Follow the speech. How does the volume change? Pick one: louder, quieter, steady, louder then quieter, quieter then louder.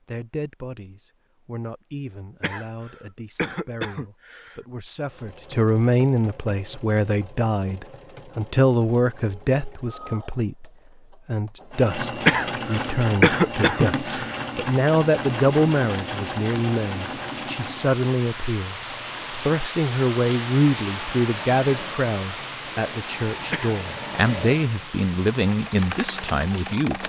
louder.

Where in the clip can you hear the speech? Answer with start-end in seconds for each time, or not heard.
0.1-27.0.